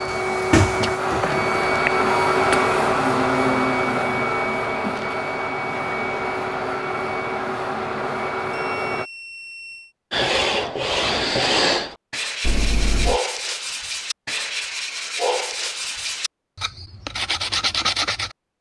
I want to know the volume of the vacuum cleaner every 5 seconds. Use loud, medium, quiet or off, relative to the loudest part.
loud, medium, off, off.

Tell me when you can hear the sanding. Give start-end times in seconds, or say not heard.
10.1-18.4.